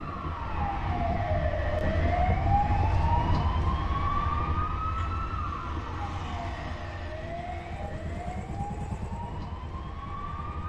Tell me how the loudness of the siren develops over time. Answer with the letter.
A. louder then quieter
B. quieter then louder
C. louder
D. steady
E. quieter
E.